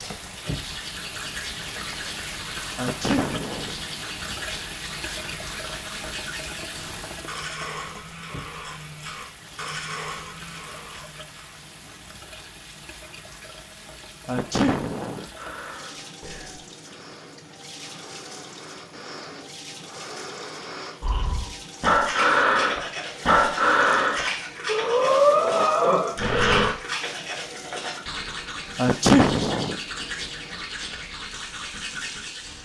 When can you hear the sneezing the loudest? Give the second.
29 s.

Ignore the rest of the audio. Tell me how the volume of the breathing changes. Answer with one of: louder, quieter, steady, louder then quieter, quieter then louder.
louder.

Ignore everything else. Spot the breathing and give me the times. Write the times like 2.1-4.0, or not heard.
15.2-26.8.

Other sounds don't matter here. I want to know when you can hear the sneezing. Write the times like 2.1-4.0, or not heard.
2.8-3.8, 14.2-15.2, 28.8-29.8.